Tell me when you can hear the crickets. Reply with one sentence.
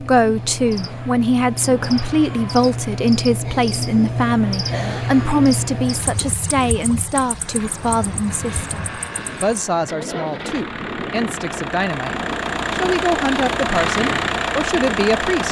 The crickets can be heard from 0.0 to 9.7 s.